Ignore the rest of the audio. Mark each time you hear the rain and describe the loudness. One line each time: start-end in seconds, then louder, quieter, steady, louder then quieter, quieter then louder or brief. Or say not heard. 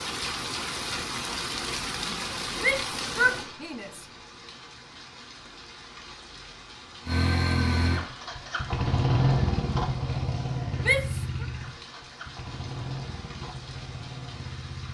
0.0-14.9 quieter.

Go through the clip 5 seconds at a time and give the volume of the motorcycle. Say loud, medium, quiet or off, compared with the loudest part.
off, loud, medium.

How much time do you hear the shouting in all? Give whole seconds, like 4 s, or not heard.
2 s.